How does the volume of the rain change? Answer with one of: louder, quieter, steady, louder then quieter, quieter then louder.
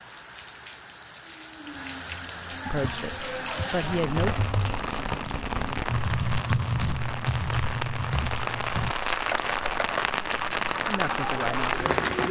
louder.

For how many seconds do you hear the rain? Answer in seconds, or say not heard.
12 s.